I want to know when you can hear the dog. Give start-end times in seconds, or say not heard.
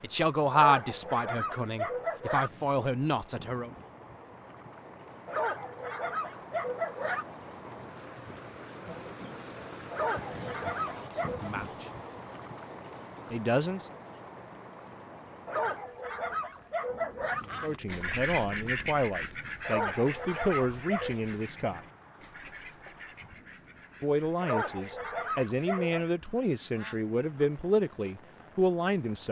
0.5-2.5, 5.2-7.2, 9.9-11.5, 15.4-17.4, 19.6-21.2, 24.4-26.1.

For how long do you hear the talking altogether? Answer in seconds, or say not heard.
14 s.